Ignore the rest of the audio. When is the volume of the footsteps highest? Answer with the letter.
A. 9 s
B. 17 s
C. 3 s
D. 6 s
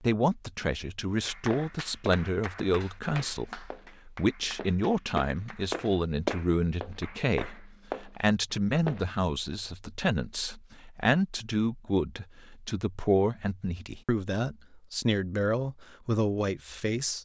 D.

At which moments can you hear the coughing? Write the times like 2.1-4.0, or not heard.
not heard.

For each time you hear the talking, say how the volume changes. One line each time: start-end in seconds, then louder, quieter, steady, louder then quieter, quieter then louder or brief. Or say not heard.
0.0-17.1 steady.